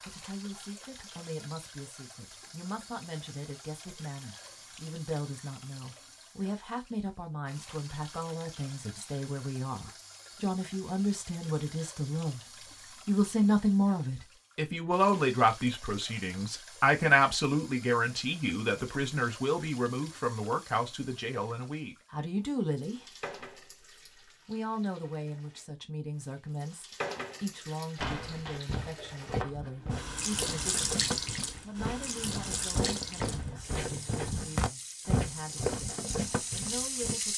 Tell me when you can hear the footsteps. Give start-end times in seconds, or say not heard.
27.9-37.1.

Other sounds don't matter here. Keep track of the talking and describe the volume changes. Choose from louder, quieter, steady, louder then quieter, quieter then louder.
louder then quieter.